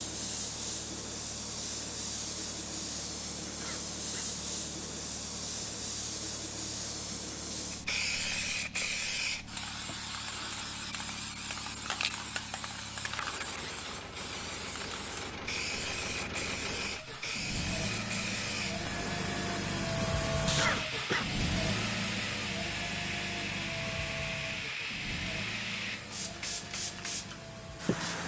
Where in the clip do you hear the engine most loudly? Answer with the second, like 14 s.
20 s.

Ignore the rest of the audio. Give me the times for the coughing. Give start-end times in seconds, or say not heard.
3.5-4.3, 13.1-13.8, 20.6-21.3.